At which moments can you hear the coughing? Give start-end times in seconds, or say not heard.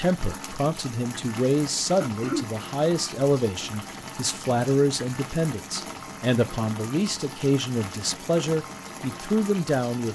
2.0-2.5.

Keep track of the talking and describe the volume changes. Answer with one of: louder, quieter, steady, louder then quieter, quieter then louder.
steady.